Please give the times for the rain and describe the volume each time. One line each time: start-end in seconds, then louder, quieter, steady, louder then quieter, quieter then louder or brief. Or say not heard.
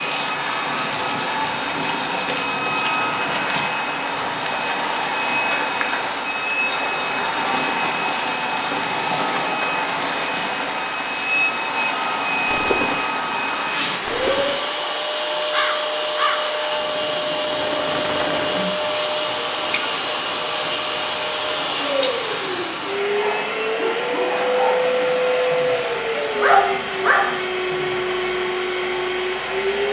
0.0-23.0 steady.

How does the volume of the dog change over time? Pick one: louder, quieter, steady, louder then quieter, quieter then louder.
quieter then louder.